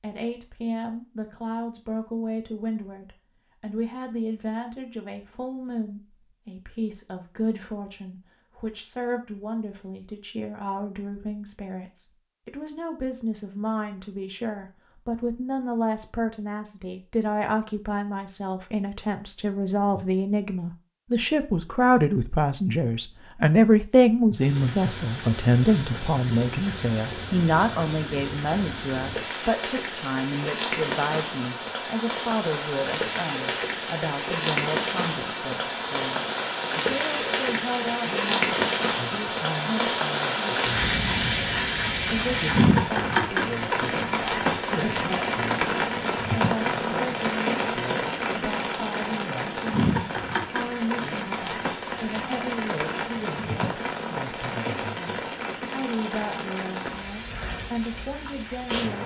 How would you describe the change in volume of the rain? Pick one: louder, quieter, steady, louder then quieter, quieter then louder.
louder then quieter.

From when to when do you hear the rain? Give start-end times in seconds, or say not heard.
24.4-59.0.